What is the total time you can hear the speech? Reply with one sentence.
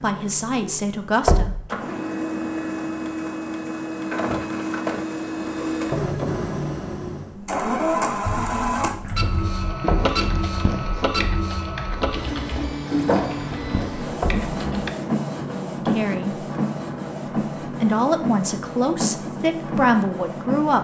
You can hear the speech for 5 seconds altogether.